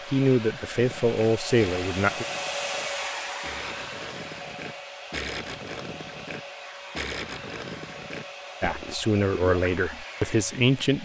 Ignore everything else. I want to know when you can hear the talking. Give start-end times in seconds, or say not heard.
0.1-2.2, 8.6-11.0.